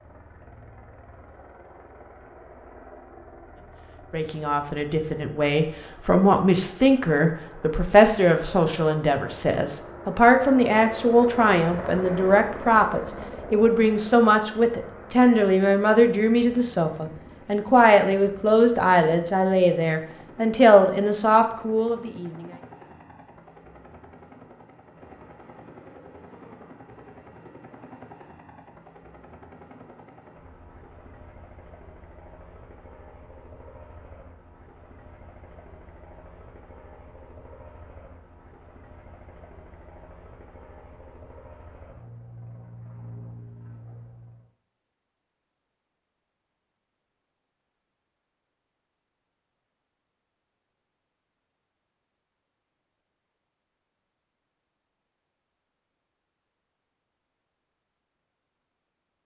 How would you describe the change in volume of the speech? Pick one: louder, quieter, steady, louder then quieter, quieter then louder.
steady.